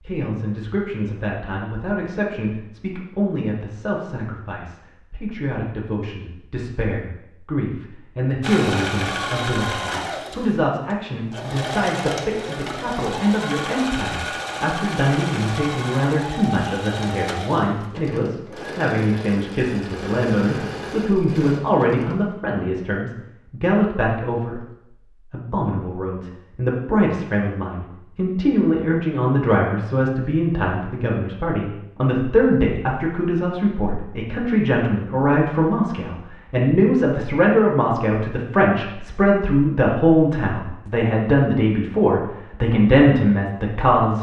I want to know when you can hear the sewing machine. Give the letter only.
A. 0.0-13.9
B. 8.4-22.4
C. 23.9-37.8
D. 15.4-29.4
B.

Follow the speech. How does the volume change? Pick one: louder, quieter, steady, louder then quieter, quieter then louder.
louder.